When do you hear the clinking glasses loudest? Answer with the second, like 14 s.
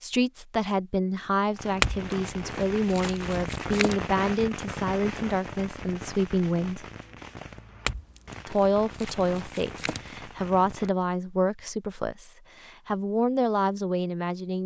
2 s.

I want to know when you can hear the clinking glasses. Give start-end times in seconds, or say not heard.
1.8-4.0, 7.8-10.2.